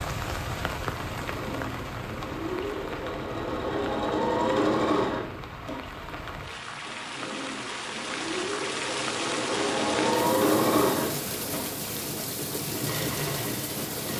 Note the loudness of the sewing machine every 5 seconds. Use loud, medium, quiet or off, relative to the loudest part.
loud, medium, loud.